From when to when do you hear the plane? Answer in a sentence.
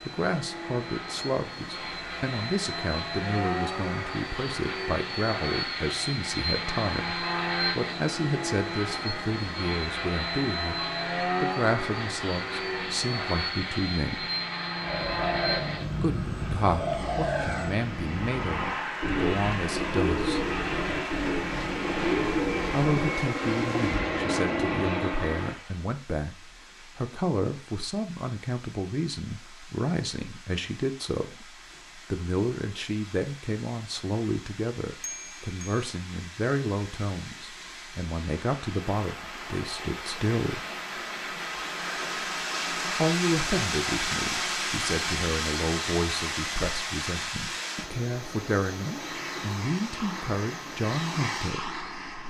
You can hear the plane from 0.0 to 25.8 s and from 48.8 to 52.2 s.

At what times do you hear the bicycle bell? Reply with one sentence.
The bicycle bell can be heard from 35.0 to 35.9 s.